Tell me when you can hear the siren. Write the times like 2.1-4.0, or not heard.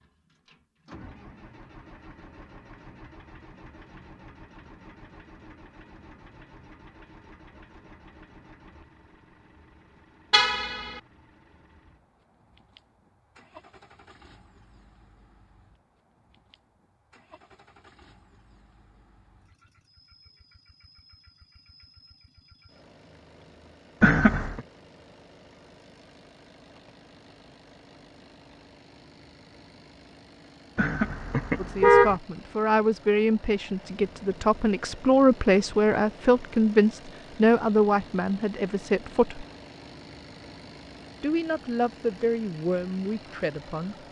not heard.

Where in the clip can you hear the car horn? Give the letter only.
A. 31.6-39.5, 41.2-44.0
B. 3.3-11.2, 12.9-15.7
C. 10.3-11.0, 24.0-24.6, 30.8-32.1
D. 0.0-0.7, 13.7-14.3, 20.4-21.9
C.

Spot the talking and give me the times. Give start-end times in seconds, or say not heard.
31.6-39.5, 41.2-44.0.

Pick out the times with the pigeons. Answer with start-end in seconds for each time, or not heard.
not heard.